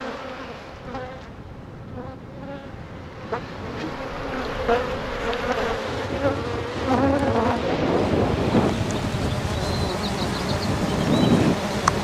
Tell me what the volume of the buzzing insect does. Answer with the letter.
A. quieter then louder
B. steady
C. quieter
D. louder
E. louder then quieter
D.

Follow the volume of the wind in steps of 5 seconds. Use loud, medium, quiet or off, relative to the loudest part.
quiet, loud, loud.